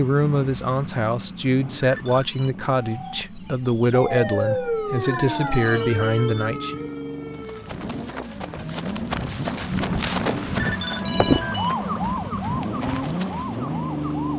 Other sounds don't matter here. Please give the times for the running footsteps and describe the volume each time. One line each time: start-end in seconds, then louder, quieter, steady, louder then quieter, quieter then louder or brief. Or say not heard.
7.3-13.5 louder then quieter.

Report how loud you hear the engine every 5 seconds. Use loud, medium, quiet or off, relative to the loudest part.
medium, medium, loud.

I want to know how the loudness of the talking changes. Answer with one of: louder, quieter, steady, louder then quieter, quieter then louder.
steady.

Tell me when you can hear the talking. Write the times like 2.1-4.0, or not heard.
0.0-6.8.